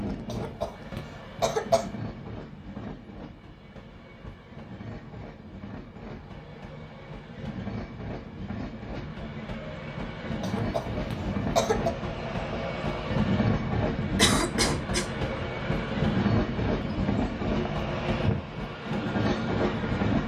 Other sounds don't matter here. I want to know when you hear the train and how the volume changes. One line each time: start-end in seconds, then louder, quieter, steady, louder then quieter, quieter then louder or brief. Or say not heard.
0.0-20.2 louder.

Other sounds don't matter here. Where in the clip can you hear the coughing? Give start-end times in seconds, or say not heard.
0.2-1.9, 10.4-11.9, 14.2-15.1.